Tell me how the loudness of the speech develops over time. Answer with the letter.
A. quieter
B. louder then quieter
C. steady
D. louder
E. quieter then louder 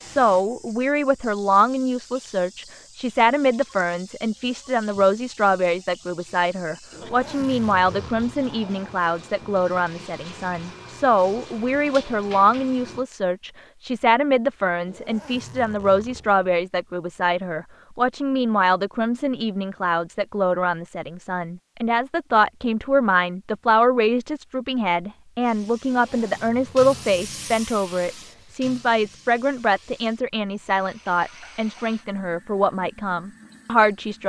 C.